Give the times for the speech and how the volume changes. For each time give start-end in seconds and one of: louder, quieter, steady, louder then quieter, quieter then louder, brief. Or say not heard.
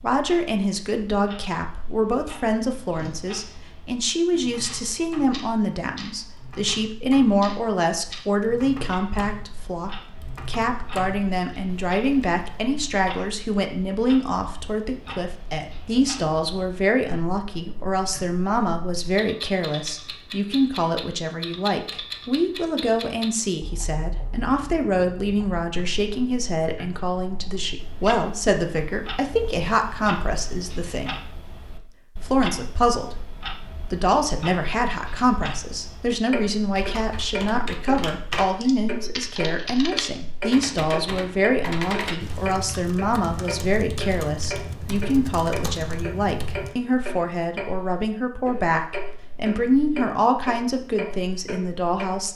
0.0-31.4 steady
32.2-52.3 steady.